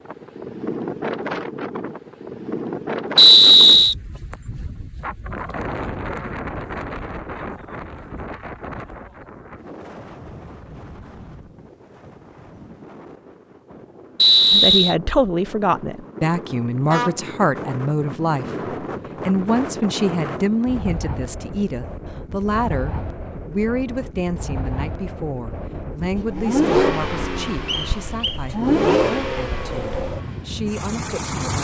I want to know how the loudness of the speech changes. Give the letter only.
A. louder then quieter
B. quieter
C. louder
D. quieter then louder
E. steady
B.